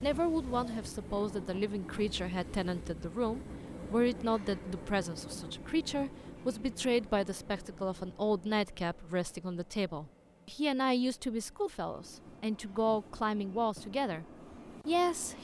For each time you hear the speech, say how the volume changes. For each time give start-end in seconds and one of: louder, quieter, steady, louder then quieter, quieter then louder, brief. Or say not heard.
0.0-14.2 steady
14.8-15.3 brief.